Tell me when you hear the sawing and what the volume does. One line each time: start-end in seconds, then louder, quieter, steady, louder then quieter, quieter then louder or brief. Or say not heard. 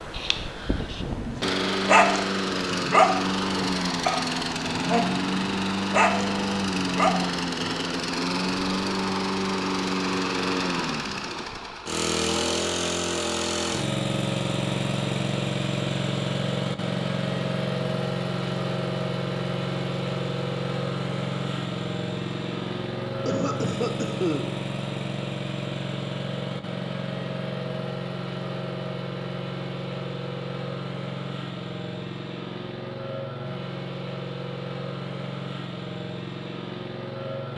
not heard.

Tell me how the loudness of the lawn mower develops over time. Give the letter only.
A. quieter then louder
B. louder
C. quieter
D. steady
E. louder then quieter
C.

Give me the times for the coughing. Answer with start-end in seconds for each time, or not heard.
23.2-24.4.